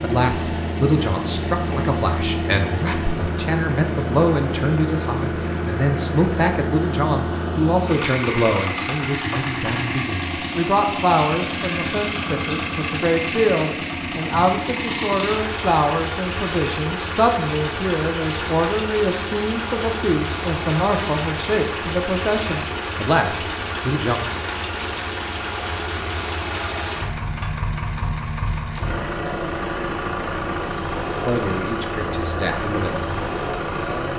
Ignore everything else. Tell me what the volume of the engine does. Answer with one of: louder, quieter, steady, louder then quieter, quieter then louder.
steady.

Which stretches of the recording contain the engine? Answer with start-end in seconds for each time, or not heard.
0.0-34.1.